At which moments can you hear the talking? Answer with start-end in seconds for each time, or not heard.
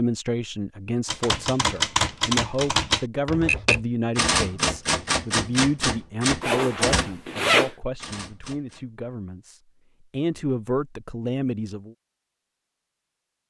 0.0-11.9.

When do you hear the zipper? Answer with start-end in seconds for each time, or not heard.
6.4-7.7.